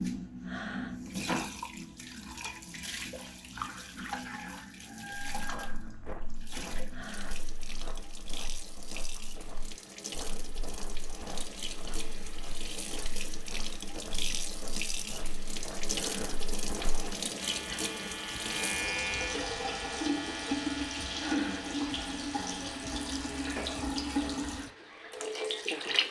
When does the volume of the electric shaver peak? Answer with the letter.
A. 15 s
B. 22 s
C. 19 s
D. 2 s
C.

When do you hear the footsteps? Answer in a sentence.
You can hear the footsteps from 5.3 to 17.1 s.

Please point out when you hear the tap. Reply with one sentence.
You can hear the tap from 0.0 to 26.0 s.